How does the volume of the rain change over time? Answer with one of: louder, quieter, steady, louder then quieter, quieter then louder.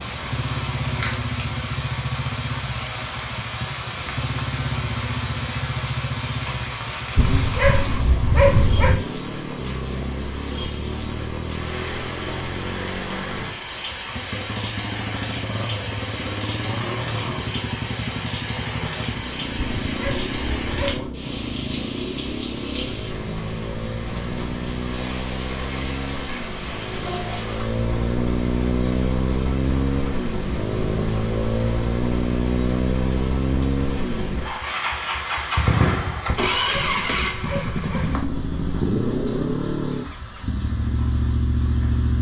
quieter.